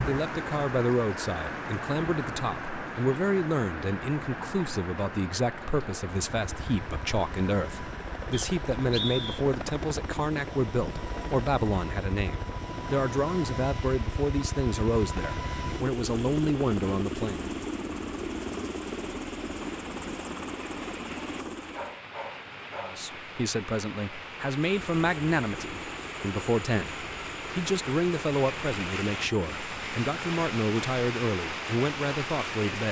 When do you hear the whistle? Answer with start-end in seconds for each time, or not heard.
8.3-9.4.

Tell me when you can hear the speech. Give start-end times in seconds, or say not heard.
0.0-17.4, 22.8-32.8.